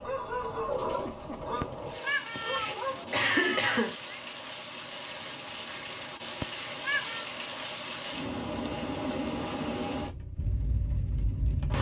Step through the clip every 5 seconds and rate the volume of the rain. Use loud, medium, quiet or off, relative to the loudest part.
medium, loud, loud.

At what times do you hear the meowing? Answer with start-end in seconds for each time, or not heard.
1.6-4.2, 6.4-7.2.